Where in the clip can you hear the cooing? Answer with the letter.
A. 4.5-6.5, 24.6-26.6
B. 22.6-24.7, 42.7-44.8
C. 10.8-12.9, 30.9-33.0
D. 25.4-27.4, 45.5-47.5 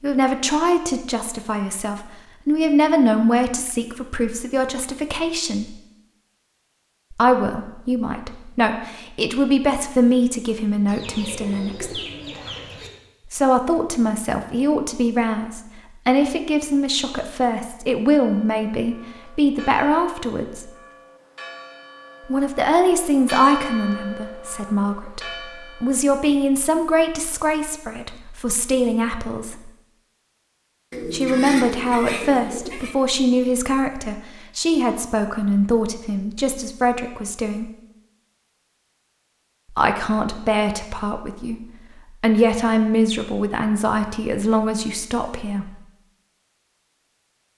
C.